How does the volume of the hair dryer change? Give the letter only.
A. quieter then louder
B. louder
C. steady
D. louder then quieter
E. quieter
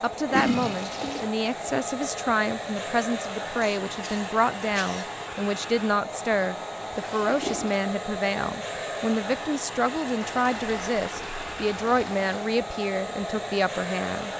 C.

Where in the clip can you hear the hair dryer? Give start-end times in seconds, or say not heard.
0.0-14.3.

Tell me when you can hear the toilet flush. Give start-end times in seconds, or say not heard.
0.3-1.3, 6.9-7.8, 10.2-12.5.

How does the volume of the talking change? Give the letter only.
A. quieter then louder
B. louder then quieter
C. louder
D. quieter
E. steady
E.